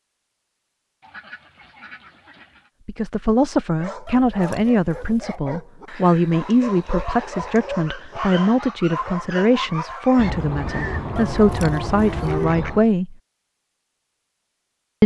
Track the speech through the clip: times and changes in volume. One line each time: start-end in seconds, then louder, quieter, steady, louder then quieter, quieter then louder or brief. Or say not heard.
2.9-13.2 steady.